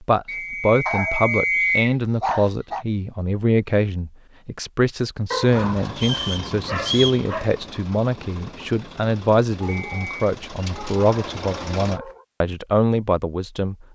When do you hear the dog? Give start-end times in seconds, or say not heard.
0.8-2.9, 5.3-7.5, 9.6-12.2.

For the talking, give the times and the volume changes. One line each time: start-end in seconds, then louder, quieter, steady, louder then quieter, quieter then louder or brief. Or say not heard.
0.1-13.8 steady.